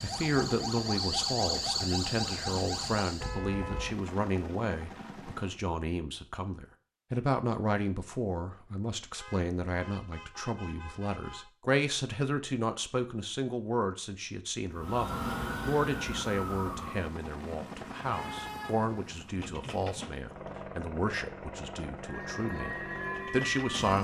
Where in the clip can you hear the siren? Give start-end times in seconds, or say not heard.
0.0-3.4, 14.7-17.1, 22.0-23.9.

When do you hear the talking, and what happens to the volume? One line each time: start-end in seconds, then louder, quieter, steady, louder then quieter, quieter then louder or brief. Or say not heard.
0.0-23.9 steady.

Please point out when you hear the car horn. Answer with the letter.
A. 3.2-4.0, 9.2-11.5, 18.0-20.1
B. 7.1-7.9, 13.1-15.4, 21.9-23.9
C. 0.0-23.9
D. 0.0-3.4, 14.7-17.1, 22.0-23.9
A.